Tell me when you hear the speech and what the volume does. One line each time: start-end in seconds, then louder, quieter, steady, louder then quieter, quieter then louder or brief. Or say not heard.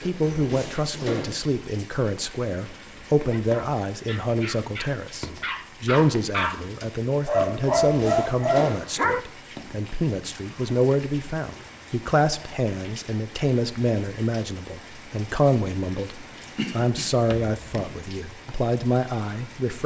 0.0-19.8 steady.